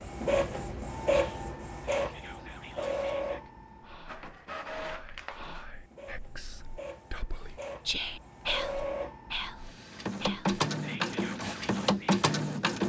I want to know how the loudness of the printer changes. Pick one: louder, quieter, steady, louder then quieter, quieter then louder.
quieter then louder.